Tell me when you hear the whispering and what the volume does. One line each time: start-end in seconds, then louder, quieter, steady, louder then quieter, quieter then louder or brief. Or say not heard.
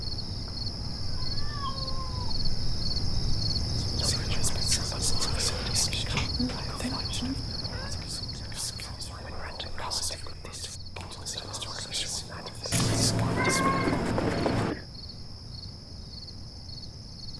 3.8-13.8 quieter then louder.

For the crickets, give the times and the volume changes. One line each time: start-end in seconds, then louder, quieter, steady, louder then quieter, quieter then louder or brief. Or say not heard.
0.0-17.3 quieter.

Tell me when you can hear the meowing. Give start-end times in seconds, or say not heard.
1.1-2.4, 6.2-8.0, 12.7-14.8.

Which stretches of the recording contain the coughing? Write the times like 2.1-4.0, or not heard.
5.0-6.3, 13.4-15.1.